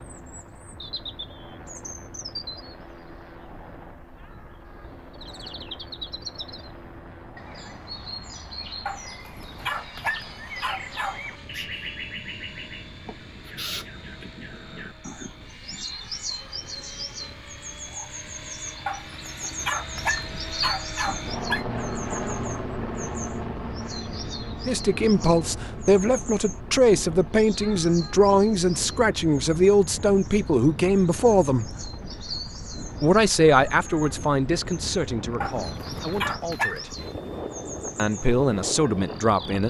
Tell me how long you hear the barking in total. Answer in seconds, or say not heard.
7 s.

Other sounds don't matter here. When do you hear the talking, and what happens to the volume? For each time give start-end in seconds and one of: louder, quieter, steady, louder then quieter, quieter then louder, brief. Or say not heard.
24.6-31.8 steady
33.0-37.0 quieter
38.0-39.6 brief.